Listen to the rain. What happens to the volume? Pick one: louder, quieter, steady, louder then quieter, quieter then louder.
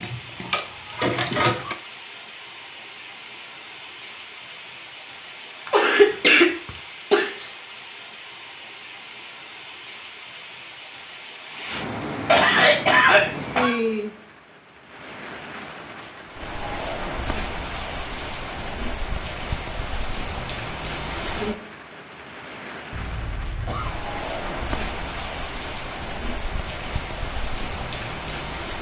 louder.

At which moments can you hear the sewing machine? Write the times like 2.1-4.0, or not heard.
0.0-1.8.